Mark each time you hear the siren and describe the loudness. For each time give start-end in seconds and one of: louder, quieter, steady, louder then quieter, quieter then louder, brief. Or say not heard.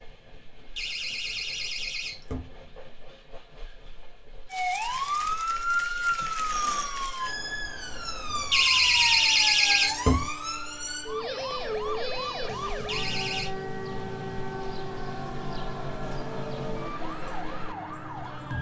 4.5-18.5 quieter.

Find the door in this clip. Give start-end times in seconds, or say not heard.
0.8-2.5, 8.5-10.2, 12.8-13.5.